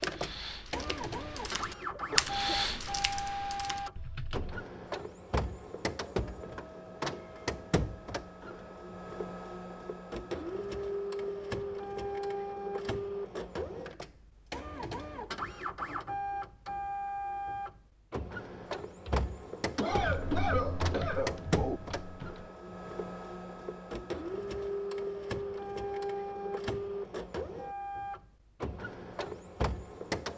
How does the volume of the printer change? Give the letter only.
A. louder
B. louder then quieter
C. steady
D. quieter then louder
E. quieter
C.